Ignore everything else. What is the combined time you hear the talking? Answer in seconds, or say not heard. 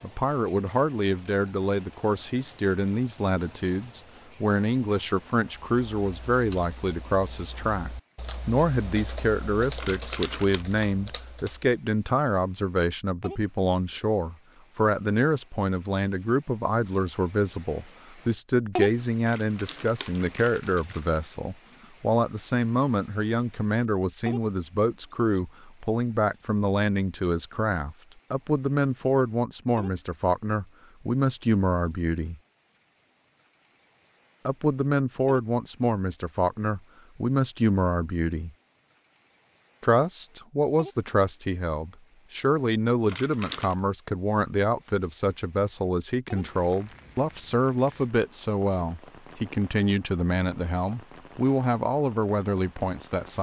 50 s.